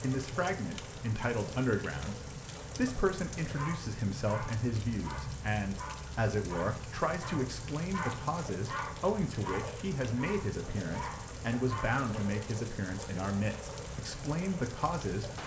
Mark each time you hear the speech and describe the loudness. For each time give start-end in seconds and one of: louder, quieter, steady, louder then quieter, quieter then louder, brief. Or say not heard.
0.0-15.3 steady.